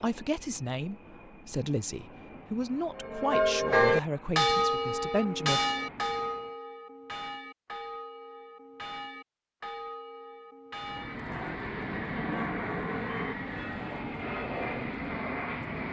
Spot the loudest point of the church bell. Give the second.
4 s.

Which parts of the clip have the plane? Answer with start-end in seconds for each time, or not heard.
0.0-6.5, 10.8-15.8.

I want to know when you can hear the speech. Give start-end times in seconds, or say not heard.
0.0-5.6.